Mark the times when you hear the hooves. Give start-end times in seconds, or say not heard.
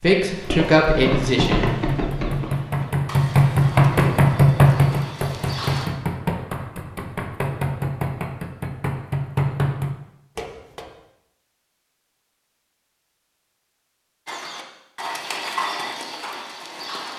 0.3-5.9, 14.2-17.1.